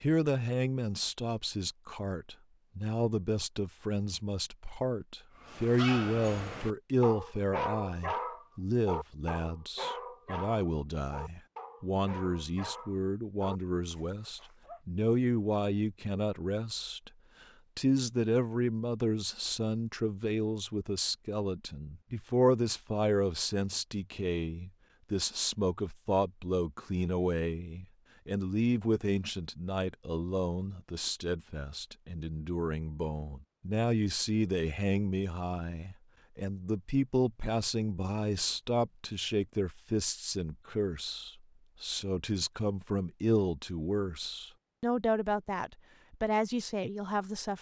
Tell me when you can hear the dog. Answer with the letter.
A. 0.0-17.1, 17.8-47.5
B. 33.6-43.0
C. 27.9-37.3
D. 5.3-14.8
D.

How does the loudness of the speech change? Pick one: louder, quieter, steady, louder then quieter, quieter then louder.
steady.